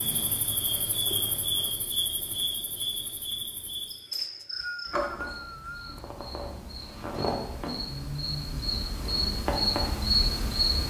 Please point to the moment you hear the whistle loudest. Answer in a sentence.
The volume of the whistle peaks at 5 seconds.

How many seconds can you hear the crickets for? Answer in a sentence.
You can hear the crickets for 11 seconds altogether.